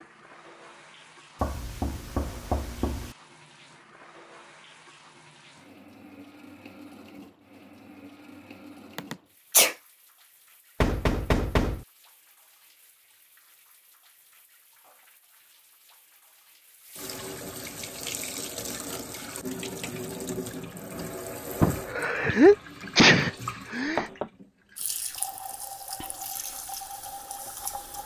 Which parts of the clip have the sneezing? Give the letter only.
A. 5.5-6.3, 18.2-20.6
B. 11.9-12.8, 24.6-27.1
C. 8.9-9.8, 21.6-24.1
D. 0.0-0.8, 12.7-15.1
C.